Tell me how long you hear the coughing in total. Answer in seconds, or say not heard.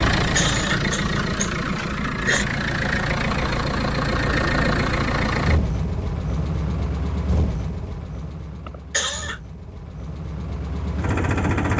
3 s.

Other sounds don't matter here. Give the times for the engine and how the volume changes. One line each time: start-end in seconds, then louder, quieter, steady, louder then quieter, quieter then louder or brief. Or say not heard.
0.0-11.7 quieter.